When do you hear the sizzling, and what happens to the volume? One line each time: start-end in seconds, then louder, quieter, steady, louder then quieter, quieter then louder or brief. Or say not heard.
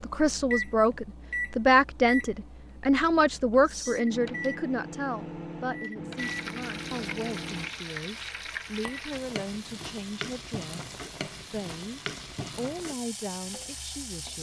6.2-14.3 steady.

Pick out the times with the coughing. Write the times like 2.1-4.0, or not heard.
not heard.